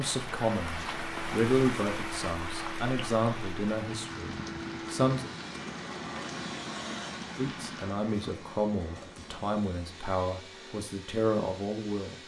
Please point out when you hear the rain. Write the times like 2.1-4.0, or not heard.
0.0-8.0.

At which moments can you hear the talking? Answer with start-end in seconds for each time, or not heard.
0.0-5.3, 7.3-12.2.